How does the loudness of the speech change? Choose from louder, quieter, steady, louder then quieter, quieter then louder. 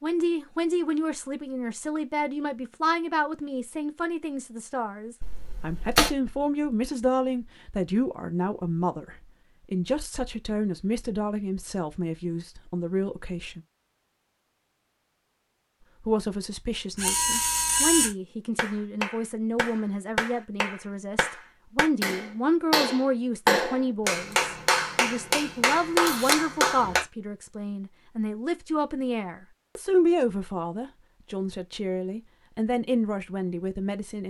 steady.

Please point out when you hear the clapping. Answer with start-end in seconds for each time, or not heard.
18.6-27.1.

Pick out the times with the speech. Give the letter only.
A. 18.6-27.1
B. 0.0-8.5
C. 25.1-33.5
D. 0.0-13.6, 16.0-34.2
D.